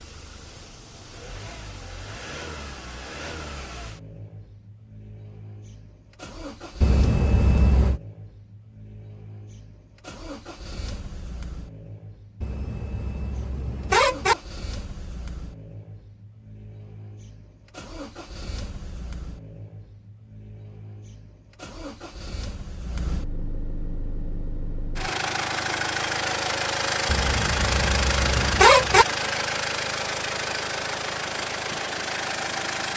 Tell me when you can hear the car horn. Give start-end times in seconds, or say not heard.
6.8-8.0, 12.4-14.3, 27.1-29.1.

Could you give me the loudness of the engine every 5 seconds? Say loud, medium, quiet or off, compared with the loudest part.
quiet, quiet, quiet, quiet, quiet, loud, loud.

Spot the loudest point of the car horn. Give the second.
29 s.